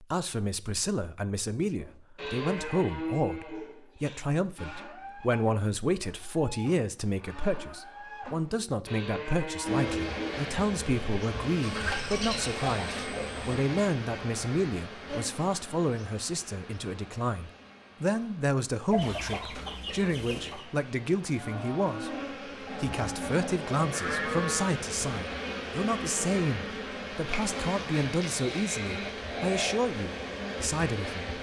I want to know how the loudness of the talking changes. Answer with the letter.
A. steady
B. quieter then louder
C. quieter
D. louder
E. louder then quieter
A.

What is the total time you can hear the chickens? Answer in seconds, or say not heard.
4 s.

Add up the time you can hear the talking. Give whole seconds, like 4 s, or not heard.
31 s.